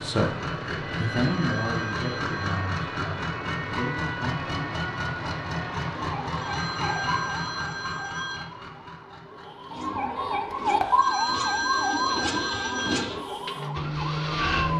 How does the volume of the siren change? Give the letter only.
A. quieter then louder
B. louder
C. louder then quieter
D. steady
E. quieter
B.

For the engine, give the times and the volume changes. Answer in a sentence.
You can hear the engine from 0.0 to 14.7 s, getting quieter then louder.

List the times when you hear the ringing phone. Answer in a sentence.
The ringing phone can be heard from 1.0 to 2.6 s, from 6.3 to 8.4 s and from 10.9 to 13.0 s.